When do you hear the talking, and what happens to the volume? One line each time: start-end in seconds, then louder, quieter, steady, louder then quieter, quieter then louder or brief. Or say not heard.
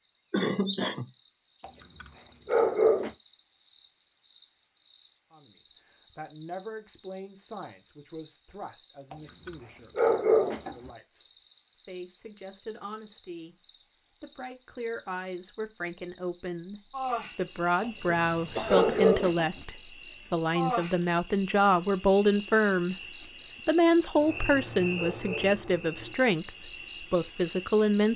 5.3-28.1 louder.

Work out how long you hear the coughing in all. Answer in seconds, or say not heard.
2 s.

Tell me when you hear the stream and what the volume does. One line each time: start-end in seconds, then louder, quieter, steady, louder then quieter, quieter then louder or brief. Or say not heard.
not heard.